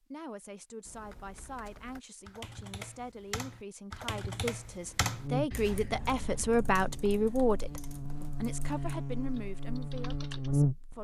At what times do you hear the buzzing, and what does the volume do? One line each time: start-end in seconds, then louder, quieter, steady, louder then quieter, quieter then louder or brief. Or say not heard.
5.1-10.9 louder.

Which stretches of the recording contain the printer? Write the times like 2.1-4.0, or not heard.
not heard.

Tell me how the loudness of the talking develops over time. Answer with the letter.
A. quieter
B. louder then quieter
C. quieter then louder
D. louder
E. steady
B.